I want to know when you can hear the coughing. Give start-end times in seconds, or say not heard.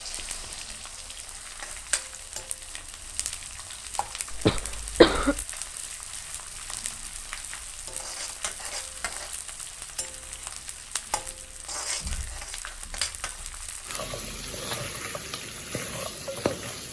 4.3-5.5.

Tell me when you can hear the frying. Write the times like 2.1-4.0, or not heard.
0.0-16.8.